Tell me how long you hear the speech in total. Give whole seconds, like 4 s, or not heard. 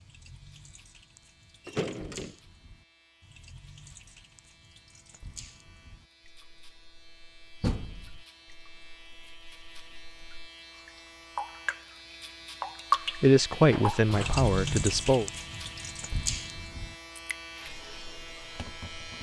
2 s.